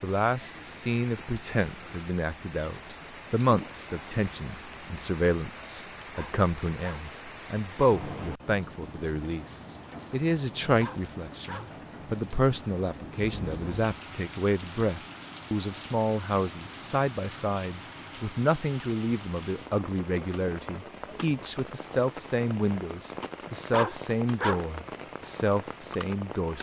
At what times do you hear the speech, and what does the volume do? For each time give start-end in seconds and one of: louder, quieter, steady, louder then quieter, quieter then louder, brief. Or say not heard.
0.0-26.5 steady.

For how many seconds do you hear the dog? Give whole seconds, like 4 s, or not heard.
3 s.